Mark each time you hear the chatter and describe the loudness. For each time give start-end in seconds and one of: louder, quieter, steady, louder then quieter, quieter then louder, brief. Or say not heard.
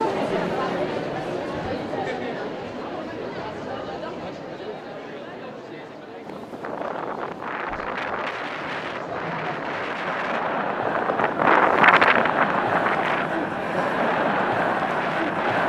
0.0-15.6 quieter then louder.